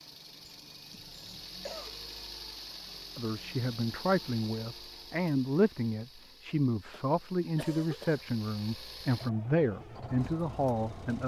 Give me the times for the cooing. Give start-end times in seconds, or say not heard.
not heard.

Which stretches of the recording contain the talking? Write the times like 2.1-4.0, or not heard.
3.1-11.2.